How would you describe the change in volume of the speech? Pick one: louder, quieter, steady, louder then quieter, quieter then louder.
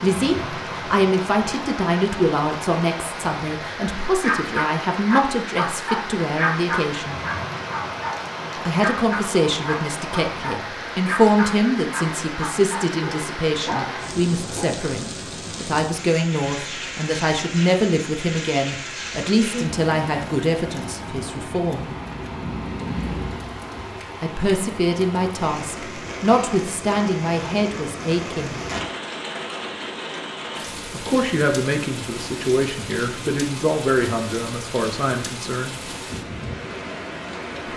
steady.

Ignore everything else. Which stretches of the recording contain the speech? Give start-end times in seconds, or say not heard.
0.0-7.2, 8.6-21.9, 24.2-28.6, 30.9-35.7.